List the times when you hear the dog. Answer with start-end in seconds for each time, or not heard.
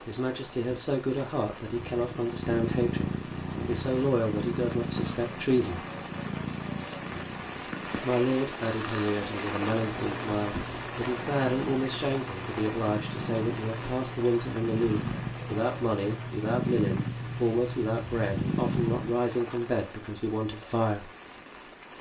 not heard.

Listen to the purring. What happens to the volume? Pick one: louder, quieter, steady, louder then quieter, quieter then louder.
quieter then louder.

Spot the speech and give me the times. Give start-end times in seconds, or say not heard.
0.1-5.8, 8.0-21.1.